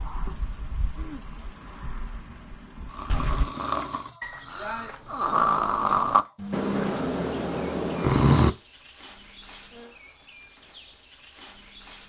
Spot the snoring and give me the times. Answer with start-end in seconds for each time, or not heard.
2.9-8.5.